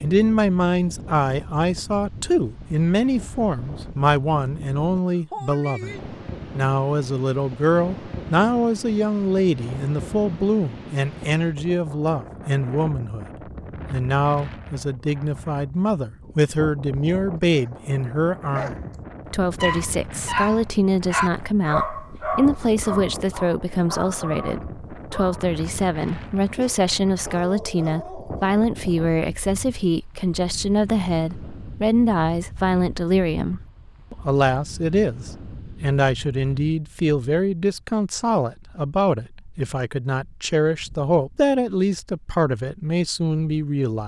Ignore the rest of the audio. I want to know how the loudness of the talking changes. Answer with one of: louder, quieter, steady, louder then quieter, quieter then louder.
steady.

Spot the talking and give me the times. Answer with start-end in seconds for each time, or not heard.
0.0-13.3, 13.9-44.0.